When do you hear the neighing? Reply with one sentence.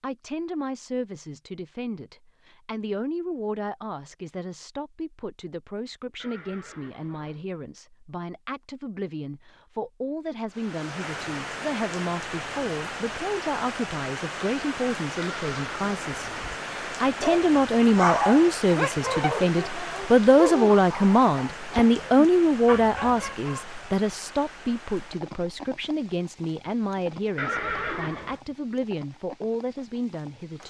You can hear the neighing from 6.2 to 7.5 s, from 15.2 to 16.6 s and from 27.4 to 28.4 s.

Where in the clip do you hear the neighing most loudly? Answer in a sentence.
The volume of the neighing peaks at 28 seconds.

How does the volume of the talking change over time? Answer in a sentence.
The volume of the talking goes up, then down.